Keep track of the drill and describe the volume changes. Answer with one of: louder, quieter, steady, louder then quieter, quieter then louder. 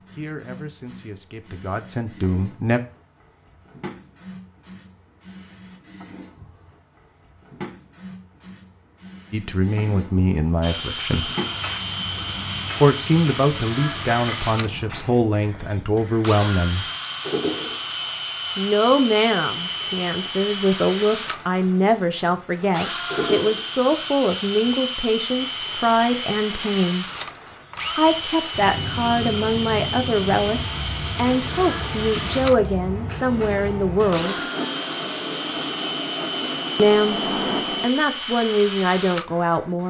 steady.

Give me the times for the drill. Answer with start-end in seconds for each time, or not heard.
10.6-39.8.